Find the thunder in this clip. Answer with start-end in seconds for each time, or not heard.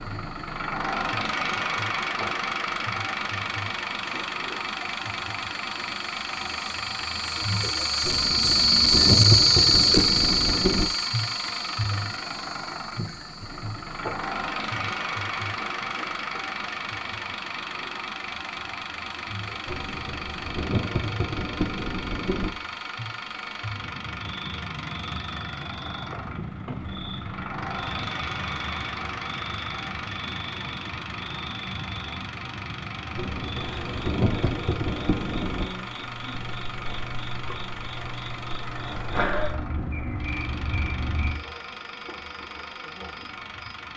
8.0-10.9, 19.6-22.5, 33.1-35.7.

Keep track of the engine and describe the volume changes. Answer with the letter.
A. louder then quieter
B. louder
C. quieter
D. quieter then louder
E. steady
C.